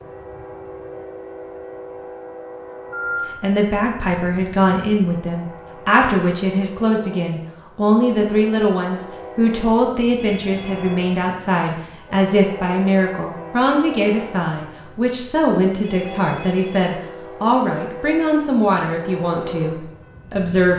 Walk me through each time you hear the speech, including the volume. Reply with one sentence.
You can hear the speech from 3.4 to 20.7 s, at a steady volume.